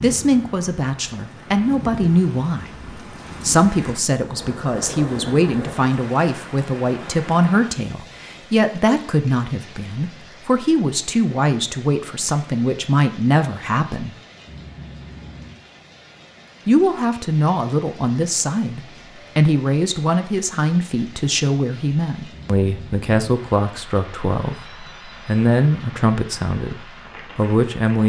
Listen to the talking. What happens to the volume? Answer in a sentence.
The volume of the talking stays about the same.